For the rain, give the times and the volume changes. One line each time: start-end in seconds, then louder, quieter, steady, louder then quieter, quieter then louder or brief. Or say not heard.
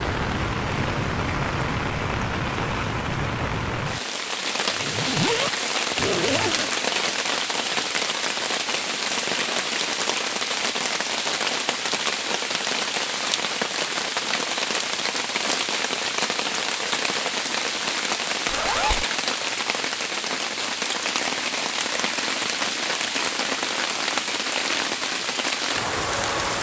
0.0-26.5 steady.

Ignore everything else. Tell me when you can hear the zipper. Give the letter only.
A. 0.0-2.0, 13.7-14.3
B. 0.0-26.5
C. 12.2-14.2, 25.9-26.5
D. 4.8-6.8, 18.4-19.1
D.